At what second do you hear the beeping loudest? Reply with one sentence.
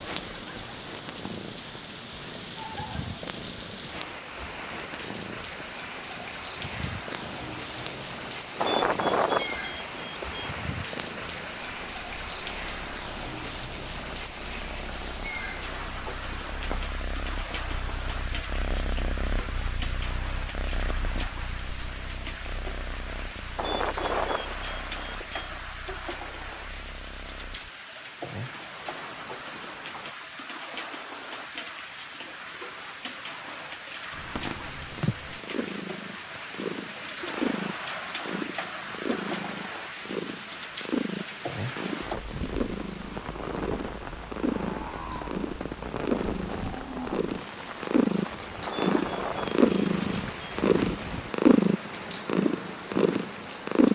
The loudest moment of the beeping is at 9 seconds.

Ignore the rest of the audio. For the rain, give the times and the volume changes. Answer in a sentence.
The rain can be heard from 0.0 to 53.8 s, at a steady volume.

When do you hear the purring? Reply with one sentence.
You can hear the purring from 0.0 to 27.7 s and from 34.1 to 53.8 s.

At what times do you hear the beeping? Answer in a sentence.
You can hear the beeping from 8.6 to 10.6 s, from 23.6 to 25.6 s and from 48.6 to 50.6 s.